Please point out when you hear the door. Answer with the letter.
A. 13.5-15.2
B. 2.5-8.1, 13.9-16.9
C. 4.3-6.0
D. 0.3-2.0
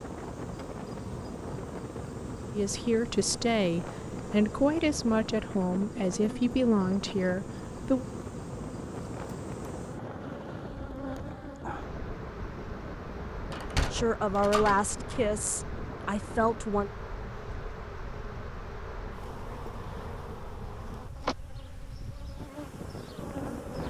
A.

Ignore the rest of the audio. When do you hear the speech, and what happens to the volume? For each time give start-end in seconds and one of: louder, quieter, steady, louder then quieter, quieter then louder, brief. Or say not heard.
2.5-8.1 steady
13.9-16.9 brief.